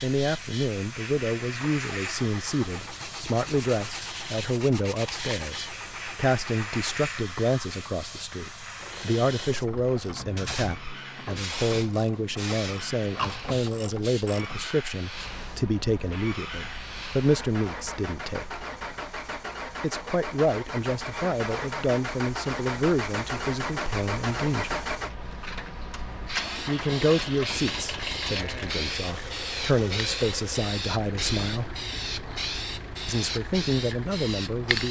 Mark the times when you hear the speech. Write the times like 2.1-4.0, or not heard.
0.0-18.6, 19.8-24.9, 26.6-31.9, 33.0-34.8.